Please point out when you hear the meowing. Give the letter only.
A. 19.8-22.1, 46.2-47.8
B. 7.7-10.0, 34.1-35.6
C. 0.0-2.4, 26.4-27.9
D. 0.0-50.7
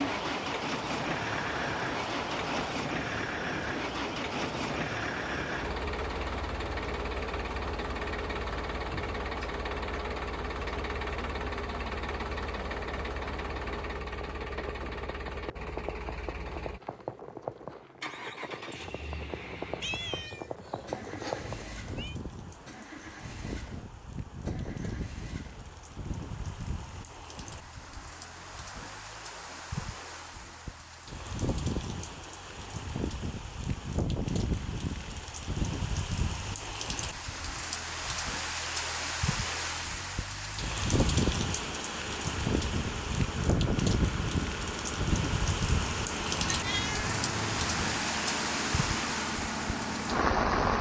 A.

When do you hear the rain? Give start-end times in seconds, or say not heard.
0.0-50.7.